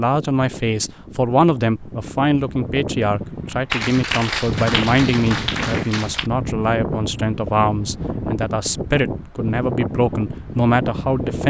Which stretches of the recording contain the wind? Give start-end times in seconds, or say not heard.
0.0-11.4.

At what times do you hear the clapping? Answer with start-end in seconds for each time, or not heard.
3.7-6.3.